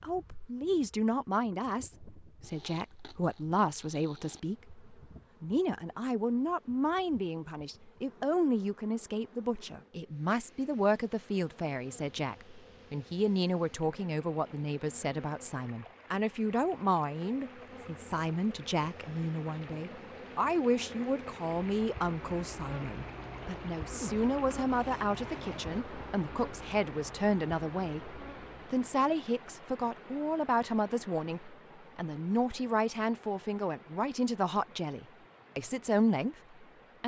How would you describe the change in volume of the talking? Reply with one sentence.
The loudness of the talking stays about the same.